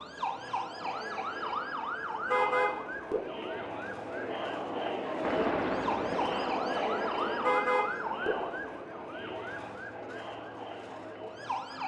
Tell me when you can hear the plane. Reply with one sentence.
You can hear the plane from 5.2 to 7.5 s.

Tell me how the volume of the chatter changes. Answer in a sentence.
The loudness of the chatter goes up, then down.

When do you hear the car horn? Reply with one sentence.
You can hear the car horn from 2.3 to 3.2 s and from 7.4 to 8.3 s.